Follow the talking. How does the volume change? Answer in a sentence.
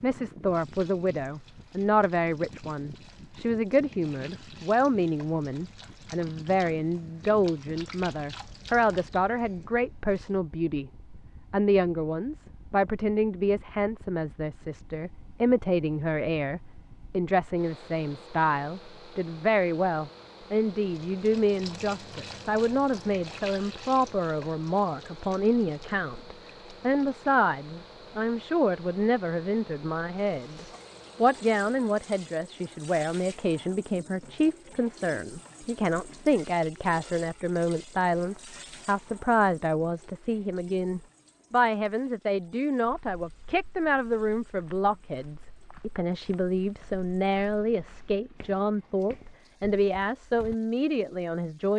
The volume of the talking stays about the same.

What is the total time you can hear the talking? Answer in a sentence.
You can hear the talking for 52 seconds altogether.